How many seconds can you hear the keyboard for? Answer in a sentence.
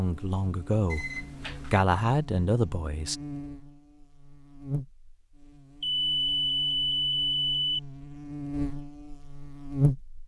The keyboard can't be heard in this clip.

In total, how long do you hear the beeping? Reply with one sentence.
You can hear the beeping for 3 seconds altogether.